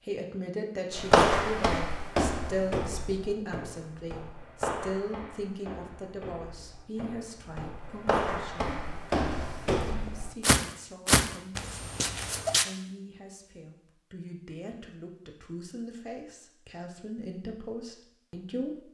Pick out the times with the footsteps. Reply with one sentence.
You can hear the footsteps from 0.9 to 12.7 s.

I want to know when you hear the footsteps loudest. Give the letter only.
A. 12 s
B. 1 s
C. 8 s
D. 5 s
B.